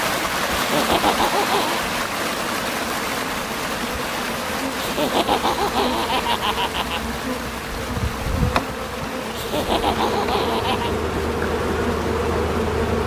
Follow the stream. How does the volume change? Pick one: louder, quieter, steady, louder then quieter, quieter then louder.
quieter.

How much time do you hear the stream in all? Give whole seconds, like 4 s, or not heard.
13 s.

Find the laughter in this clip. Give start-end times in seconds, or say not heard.
0.6-1.9, 4.8-7.0, 9.3-10.9.